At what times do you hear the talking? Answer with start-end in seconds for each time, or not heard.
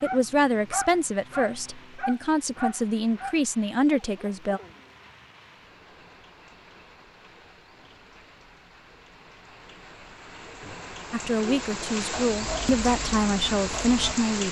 0.0-4.6, 11.1-14.4.